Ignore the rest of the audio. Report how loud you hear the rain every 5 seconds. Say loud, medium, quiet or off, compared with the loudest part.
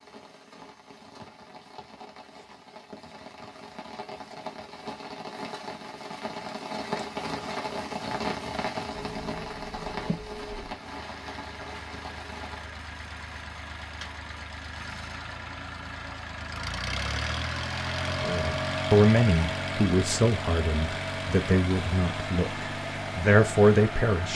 medium, loud, medium, off, off.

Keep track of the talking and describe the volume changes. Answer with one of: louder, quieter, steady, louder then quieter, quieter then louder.
quieter then louder.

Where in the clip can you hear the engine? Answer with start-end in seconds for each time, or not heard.
8.9-24.3.